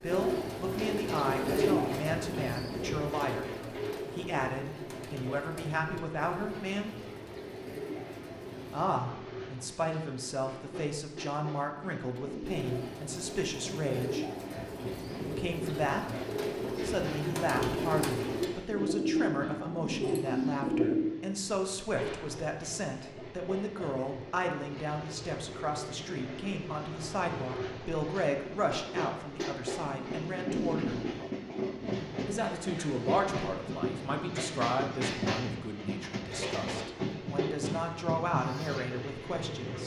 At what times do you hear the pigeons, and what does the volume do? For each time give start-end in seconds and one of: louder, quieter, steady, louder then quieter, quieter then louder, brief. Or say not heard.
0.0-8.9 quieter
12.2-21.1 louder.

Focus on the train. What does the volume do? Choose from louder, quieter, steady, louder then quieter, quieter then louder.
louder.